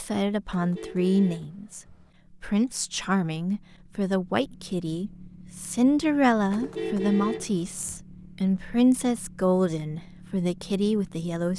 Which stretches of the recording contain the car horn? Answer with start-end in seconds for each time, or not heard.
0.5-2.1, 6.5-8.0.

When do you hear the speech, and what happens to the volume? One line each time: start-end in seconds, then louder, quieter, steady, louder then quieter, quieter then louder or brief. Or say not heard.
0.0-1.8 brief
2.4-11.5 steady.